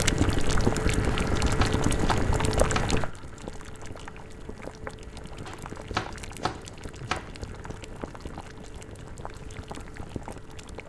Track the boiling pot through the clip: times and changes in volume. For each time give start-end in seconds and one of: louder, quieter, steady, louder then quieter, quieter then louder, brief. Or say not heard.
0.0-10.8 quieter.